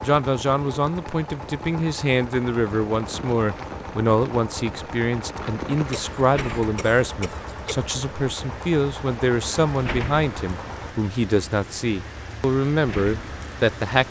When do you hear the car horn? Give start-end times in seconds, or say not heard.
not heard.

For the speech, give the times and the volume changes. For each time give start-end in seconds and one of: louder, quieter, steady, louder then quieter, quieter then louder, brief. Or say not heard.
0.0-14.0 steady.